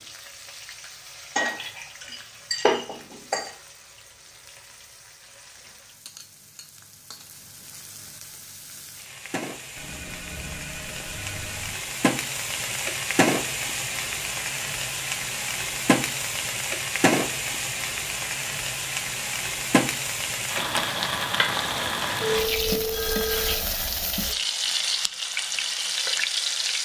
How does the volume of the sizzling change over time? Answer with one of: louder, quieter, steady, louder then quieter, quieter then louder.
louder.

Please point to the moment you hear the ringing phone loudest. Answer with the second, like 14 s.
22 s.